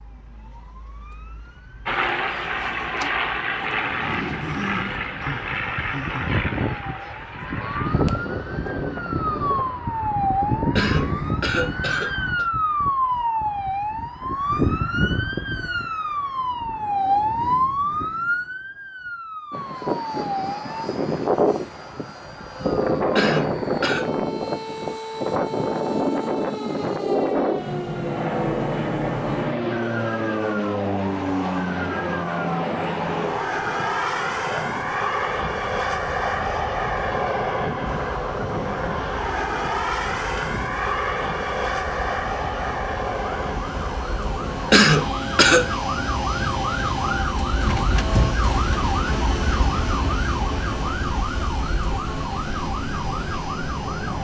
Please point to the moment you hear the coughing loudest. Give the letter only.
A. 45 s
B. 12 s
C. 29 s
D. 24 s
A.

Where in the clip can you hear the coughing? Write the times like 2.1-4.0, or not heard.
10.8-12.4, 23.1-24.1, 44.7-45.6.